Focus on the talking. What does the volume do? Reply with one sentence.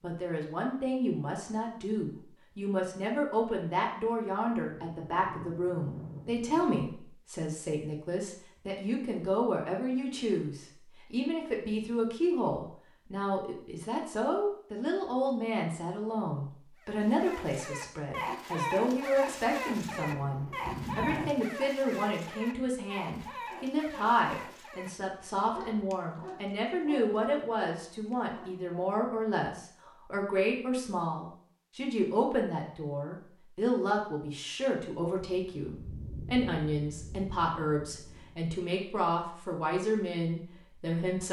The volume of the talking stays about the same.